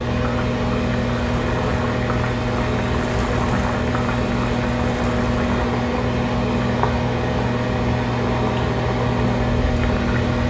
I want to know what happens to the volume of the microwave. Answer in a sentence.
The volume of the microwave stays about the same.